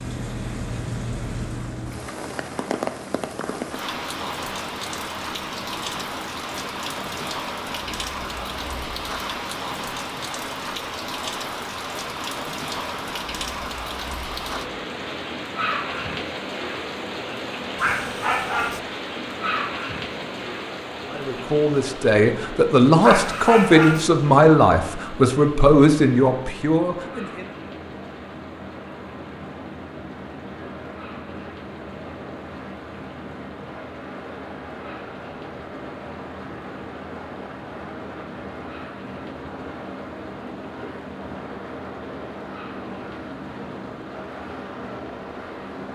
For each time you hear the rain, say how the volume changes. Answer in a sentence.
You can hear the rain from 0.0 to 45.9 s, getting quieter.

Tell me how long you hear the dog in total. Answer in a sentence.
The dog can be heard for 2 seconds in total.